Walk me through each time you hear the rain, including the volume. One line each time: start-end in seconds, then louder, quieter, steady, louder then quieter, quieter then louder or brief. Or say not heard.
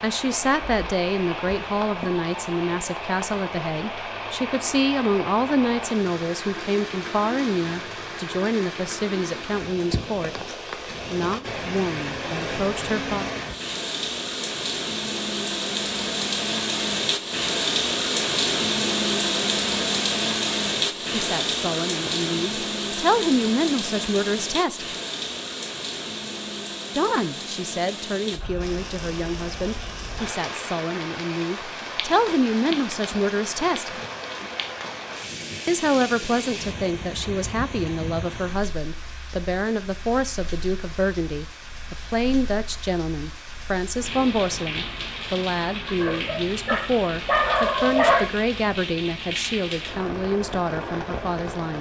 0.0-51.7 louder then quieter.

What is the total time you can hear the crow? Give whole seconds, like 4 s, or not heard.
not heard.